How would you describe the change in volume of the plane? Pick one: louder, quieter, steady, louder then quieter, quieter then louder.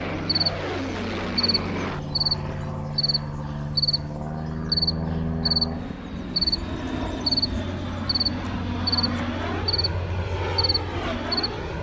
steady.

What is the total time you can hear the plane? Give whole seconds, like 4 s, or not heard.
12 s.